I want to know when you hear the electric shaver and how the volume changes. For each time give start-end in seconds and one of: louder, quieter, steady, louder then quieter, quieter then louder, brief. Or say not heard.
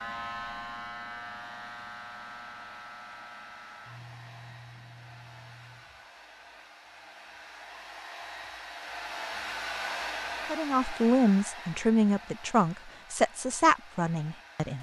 0.0-6.1 quieter.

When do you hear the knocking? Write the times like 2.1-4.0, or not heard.
not heard.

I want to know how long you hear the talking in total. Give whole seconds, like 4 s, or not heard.
4 s.